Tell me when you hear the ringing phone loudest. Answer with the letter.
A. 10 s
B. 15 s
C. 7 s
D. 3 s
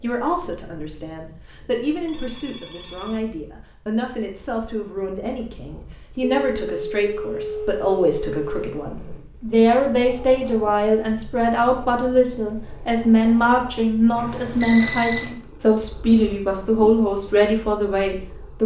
B.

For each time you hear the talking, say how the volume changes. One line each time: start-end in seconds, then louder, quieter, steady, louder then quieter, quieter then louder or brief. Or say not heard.
0.0-18.6 louder.